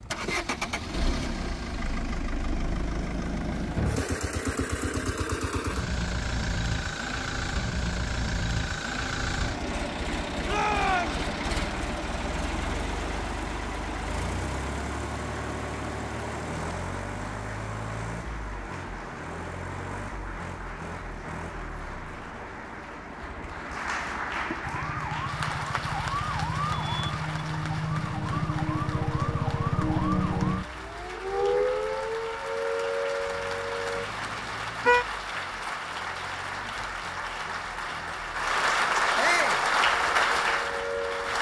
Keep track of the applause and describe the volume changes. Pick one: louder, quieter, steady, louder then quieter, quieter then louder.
louder.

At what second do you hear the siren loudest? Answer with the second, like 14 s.
30 s.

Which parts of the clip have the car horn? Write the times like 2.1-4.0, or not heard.
34.0-35.0.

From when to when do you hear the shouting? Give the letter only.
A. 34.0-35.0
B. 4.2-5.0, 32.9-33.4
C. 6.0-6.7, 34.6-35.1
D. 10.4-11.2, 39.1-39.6
D.